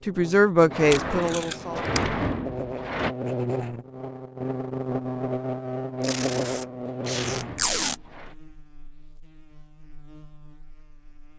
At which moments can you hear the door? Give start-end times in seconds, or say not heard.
0.7-3.1, 6.0-8.3.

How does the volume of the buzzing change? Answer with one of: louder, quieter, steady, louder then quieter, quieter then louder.
louder then quieter.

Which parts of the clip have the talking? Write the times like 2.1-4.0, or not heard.
0.1-1.9.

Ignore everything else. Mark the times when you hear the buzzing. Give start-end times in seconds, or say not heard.
0.0-11.3.